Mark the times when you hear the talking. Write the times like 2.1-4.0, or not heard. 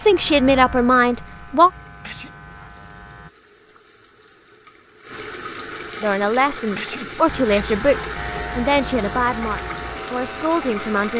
0.0-1.7, 6.0-11.1.